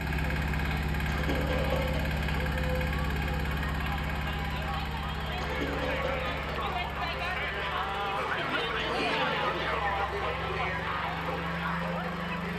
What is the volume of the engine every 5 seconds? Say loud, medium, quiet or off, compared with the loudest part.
loud, medium, medium.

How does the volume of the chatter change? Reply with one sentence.
The volume of the chatter goes up.